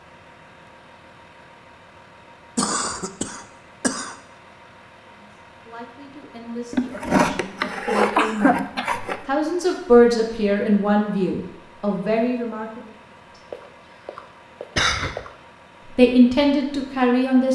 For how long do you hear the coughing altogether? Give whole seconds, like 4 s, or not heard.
6 s.